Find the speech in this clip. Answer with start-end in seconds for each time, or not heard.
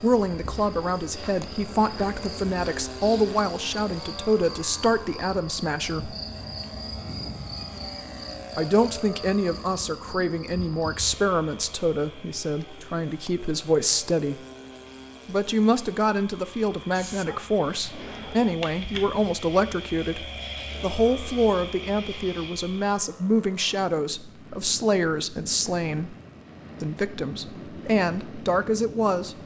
0.0-6.2, 8.6-14.3, 15.2-26.1, 26.8-29.4.